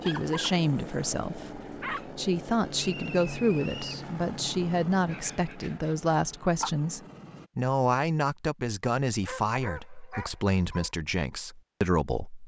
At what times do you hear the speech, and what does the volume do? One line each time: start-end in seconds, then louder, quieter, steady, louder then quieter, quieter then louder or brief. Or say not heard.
0.0-12.4 steady.